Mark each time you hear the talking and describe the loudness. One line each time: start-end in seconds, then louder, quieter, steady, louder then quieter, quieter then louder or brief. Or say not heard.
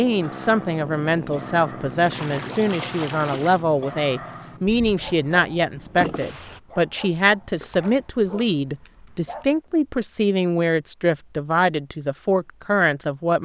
0.0-13.4 steady.